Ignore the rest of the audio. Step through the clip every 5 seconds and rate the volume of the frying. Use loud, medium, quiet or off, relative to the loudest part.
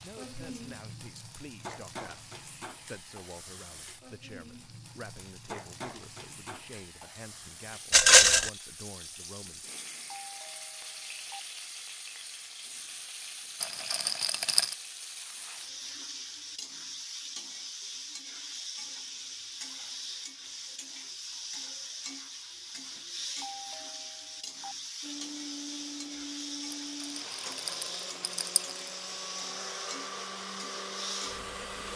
medium, medium, loud, loud, loud, loud, loud.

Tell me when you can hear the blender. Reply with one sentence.
The blender can be heard from 25.0 to 31.9 s.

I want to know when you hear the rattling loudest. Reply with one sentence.
The volume of the rattling peaks at 8 seconds.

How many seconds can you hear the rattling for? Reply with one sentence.
You can hear the rattling for 4 seconds altogether.